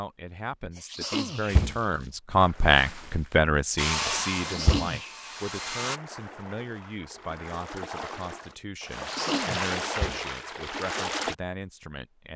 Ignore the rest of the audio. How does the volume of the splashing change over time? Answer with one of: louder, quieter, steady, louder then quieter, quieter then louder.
louder.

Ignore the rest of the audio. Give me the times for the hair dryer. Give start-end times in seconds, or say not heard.
3.8-6.0.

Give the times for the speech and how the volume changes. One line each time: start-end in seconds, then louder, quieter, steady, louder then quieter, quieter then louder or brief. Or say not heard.
0.0-12.3 quieter.